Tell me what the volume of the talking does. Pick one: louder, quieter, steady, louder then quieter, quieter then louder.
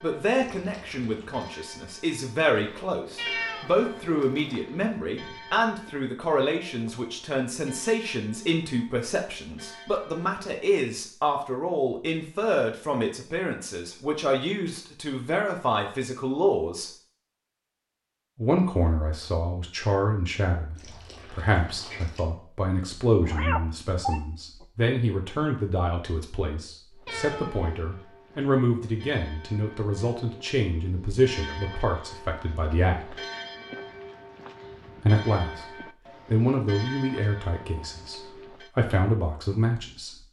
steady.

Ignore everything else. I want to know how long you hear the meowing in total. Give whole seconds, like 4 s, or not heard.
4 s.